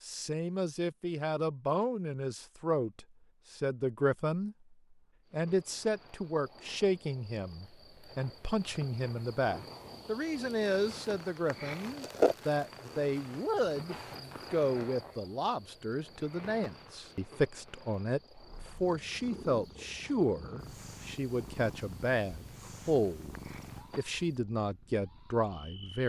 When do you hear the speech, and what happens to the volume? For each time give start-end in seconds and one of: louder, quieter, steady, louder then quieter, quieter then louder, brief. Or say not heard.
0.0-23.4 steady
23.9-26.0 brief.